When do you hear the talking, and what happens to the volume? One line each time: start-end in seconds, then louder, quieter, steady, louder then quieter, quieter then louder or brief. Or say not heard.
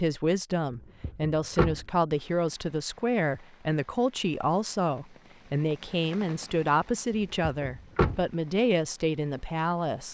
0.0-10.0 steady.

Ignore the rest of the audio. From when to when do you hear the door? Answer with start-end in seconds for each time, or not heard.
1.0-1.9, 7.4-8.2.